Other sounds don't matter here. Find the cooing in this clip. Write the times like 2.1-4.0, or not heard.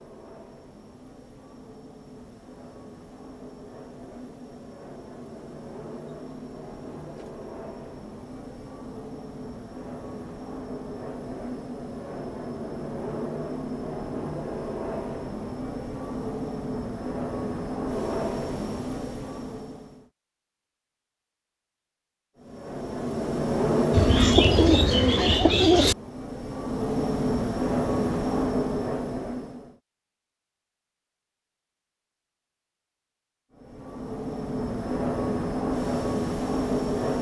23.9-25.9.